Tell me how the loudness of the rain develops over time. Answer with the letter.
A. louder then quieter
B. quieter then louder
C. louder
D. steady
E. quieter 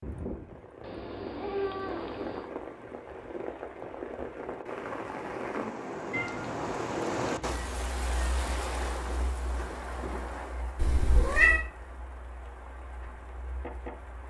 A.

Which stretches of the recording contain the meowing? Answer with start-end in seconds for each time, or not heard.
0.8-2.5, 6.1-7.3, 10.8-11.6.